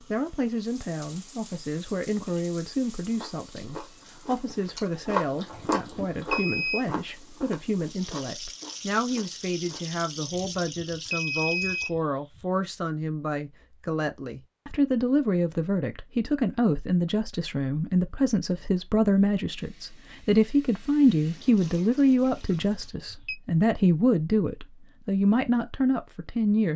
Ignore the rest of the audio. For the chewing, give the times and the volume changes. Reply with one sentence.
You can hear the chewing from 3.0 to 10.0 s, getting louder then quieter.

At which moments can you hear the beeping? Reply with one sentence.
The beeping can be heard from 5.5 to 6.8 s, from 10.3 to 12.4 s and from 22.5 to 23.4 s.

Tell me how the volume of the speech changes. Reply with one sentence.
The loudness of the speech goes up.